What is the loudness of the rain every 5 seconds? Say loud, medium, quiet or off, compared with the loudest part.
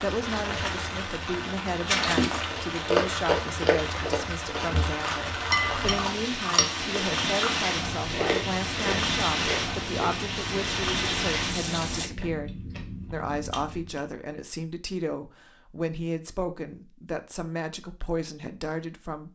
loud, loud, loud, off.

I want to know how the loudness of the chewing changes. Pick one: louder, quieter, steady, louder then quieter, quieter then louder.
quieter.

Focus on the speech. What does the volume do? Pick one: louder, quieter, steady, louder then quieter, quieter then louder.
steady.